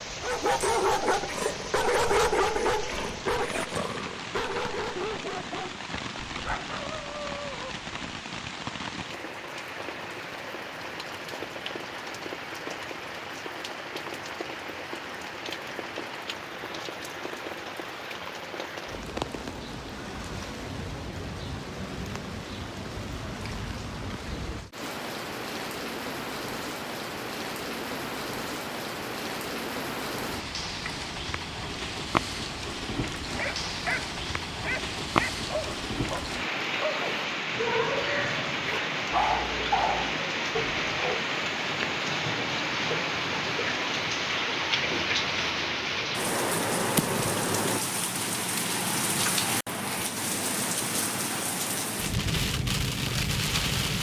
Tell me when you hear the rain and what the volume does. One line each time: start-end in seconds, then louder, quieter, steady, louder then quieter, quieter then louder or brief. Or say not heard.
0.0-53.9 louder.